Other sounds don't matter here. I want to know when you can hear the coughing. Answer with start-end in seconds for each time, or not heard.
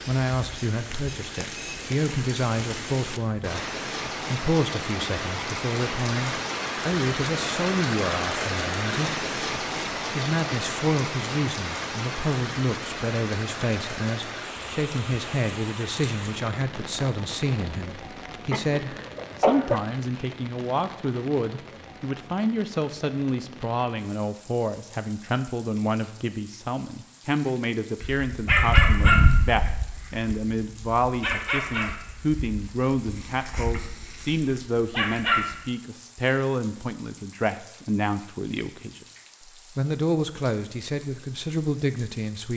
18.5-19.8.